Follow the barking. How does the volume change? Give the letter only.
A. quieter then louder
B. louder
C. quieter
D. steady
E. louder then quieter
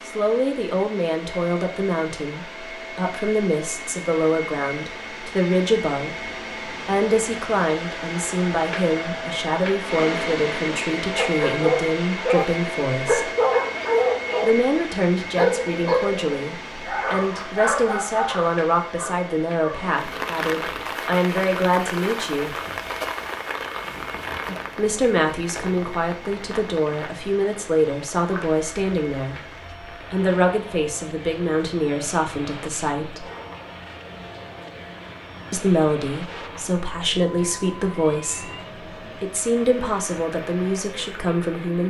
C.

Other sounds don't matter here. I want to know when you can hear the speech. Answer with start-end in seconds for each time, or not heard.
0.1-6.2, 6.8-13.3, 14.4-22.6, 24.8-33.2, 35.5-41.8.